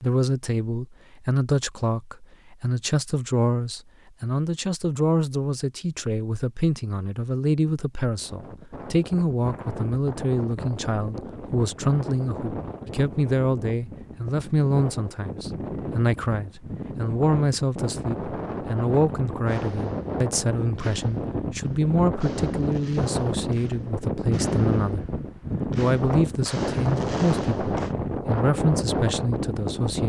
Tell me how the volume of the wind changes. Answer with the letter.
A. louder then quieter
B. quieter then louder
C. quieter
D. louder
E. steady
D.